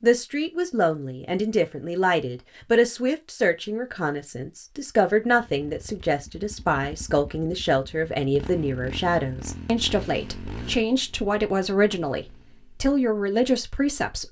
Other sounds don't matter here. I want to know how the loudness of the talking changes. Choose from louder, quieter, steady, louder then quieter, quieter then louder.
steady.